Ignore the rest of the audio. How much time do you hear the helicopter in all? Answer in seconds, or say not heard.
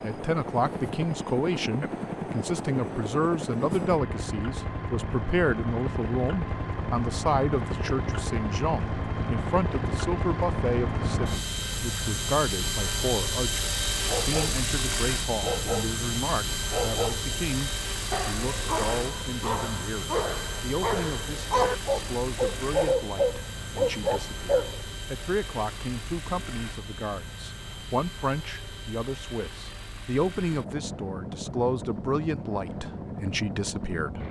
34 s.